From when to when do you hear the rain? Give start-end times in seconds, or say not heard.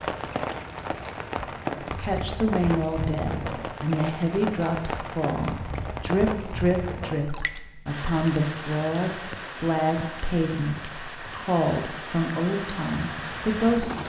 0.0-14.0.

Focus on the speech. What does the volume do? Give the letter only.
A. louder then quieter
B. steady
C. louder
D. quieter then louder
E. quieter
B.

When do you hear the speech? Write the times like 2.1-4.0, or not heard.
1.9-14.0.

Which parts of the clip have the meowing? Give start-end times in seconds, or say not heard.
not heard.